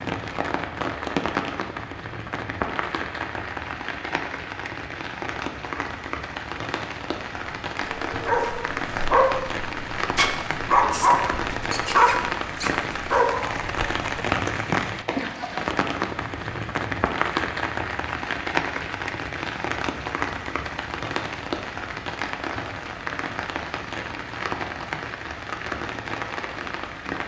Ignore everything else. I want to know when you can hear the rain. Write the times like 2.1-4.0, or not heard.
0.0-27.2.